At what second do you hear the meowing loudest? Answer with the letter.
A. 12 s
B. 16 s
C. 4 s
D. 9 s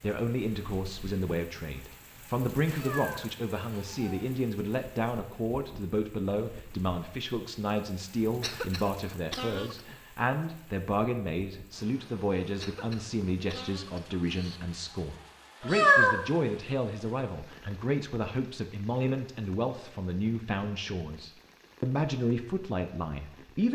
B.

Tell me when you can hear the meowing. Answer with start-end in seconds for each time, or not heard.
2.7-4.2, 15.6-16.2.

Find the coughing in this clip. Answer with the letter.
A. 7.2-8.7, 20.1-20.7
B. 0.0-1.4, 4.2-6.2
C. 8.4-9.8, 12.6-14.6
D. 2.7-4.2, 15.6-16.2
C.